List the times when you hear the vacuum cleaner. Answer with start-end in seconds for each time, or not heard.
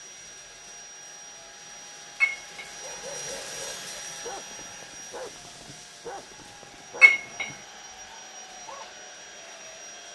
0.0-10.1.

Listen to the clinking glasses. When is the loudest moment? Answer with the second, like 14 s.
7 s.